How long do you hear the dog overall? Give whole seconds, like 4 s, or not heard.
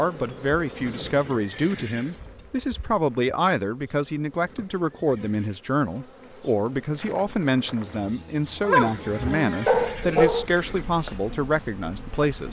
2 s.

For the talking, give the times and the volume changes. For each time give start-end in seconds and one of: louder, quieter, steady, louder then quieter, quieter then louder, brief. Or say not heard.
0.0-12.4 steady.